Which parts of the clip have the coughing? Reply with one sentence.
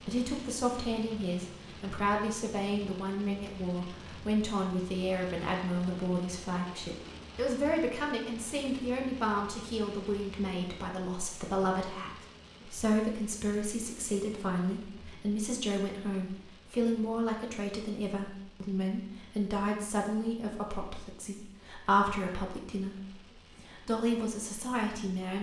You can't hear the coughing here.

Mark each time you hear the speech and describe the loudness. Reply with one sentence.
The speech can be heard from 0.1 to 25.3 s, at a steady volume.